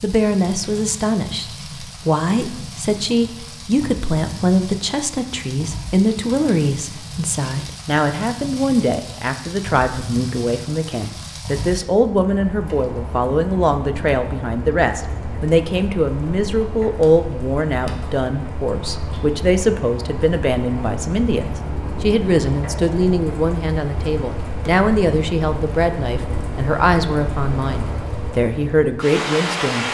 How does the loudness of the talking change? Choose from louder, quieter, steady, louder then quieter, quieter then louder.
steady.